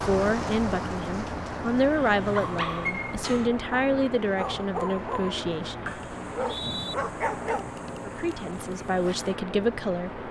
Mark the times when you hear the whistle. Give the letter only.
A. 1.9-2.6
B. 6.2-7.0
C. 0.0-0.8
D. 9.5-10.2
B.